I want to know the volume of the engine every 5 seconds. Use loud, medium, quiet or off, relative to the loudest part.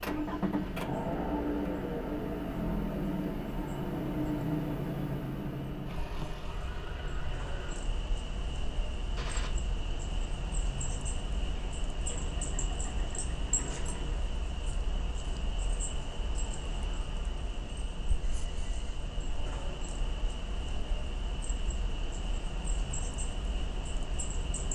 loud, medium, quiet, off, off.